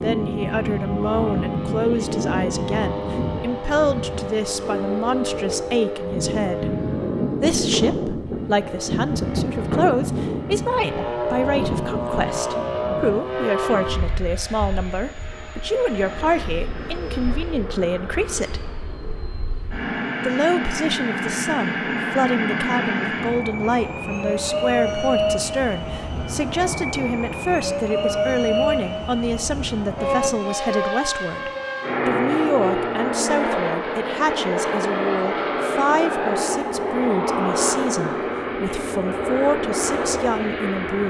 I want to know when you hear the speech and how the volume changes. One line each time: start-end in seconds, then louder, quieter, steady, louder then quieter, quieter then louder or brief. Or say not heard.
0.0-6.8 steady
7.4-18.6 steady
20.2-41.0 steady.